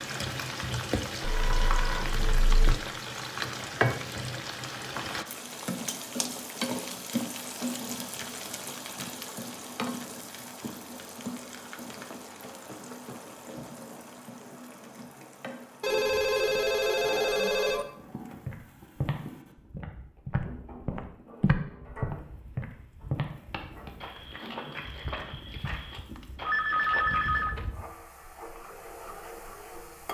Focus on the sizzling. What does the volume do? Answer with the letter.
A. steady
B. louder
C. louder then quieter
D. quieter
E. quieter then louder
D.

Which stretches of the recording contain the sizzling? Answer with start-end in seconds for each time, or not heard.
0.0-30.0.